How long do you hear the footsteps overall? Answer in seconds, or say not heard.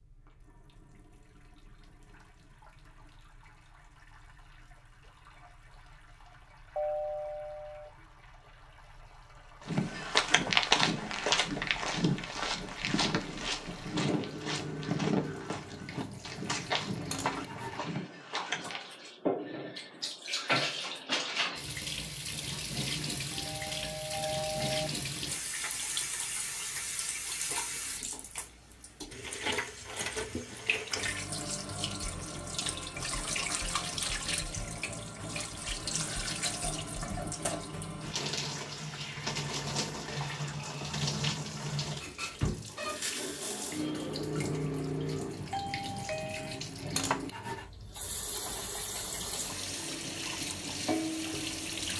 9 s.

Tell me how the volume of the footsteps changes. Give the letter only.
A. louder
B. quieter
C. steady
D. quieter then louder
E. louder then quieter
B.